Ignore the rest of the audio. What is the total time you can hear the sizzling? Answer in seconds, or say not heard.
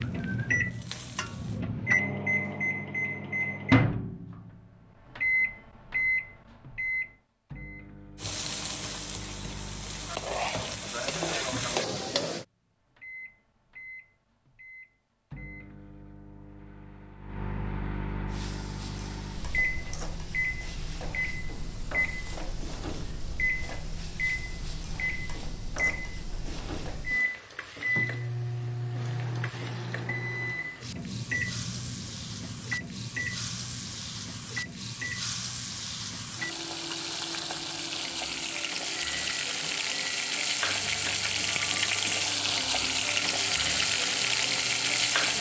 33 s.